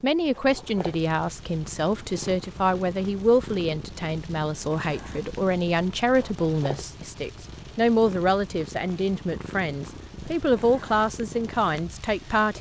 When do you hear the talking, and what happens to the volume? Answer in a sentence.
The talking can be heard from 0.0 to 12.5 s, at a steady volume.